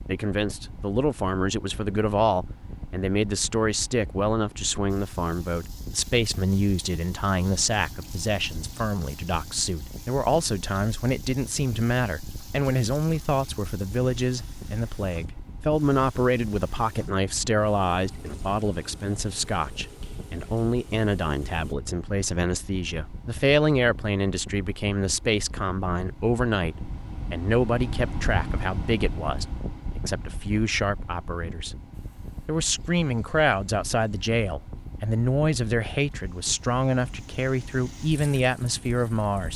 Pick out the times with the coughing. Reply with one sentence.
The coughing can't be heard in this clip.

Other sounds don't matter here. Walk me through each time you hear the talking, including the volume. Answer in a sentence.
You can hear the talking from 0.1 to 31.8 s, at a steady volume; and from 32.5 to 39.5 s, at a steady volume.